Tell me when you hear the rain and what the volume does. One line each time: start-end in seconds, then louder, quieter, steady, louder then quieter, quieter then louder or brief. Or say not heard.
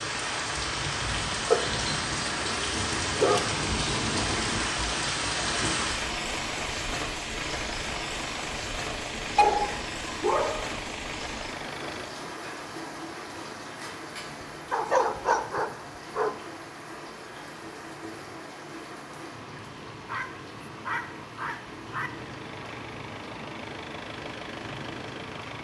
0.0-25.5 quieter.